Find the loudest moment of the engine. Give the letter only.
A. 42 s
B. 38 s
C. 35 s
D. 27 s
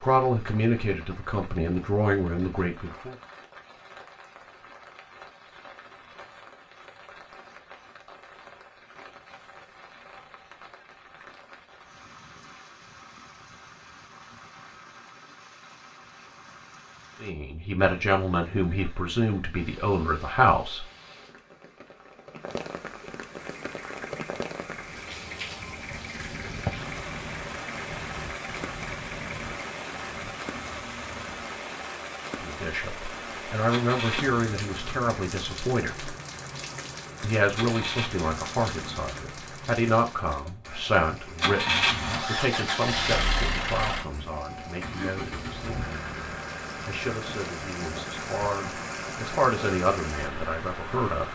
A.